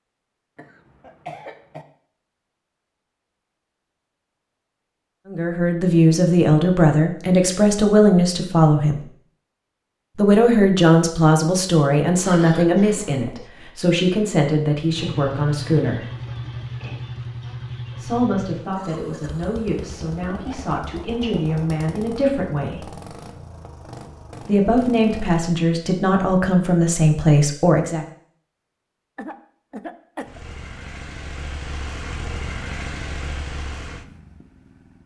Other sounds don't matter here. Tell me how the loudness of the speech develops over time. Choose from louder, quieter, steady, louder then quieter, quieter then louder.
quieter then louder.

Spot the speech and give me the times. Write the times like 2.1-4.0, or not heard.
5.2-9.0, 10.2-16.1, 17.9-22.9, 24.4-28.1.